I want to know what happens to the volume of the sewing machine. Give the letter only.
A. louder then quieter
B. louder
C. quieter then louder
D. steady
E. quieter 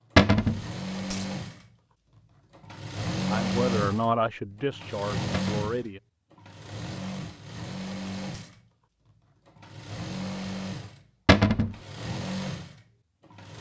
A.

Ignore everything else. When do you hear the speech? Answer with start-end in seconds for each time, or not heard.
3.3-6.0.